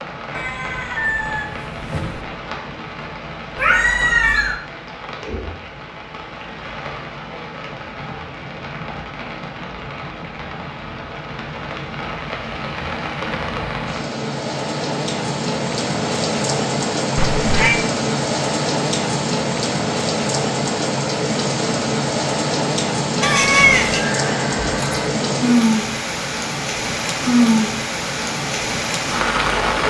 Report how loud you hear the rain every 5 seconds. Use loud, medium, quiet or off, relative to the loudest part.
quiet, quiet, medium, loud, loud, loud.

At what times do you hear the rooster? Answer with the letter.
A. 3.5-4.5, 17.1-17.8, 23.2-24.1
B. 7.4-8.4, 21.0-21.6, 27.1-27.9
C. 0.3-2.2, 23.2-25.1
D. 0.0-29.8
C.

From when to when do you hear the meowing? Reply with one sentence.
You can hear the meowing from 3.5 to 4.5 s, from 17.1 to 17.8 s and from 23.2 to 24.1 s.